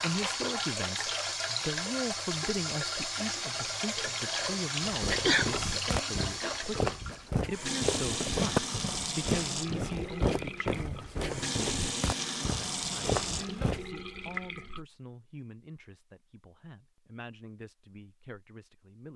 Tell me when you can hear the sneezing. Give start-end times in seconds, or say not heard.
4.9-5.5.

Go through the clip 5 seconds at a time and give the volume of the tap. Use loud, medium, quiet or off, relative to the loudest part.
loud, loud, loud, off.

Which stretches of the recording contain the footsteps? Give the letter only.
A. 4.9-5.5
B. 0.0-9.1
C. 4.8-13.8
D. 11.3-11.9
C.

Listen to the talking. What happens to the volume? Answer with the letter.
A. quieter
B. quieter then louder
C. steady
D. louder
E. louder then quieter
A.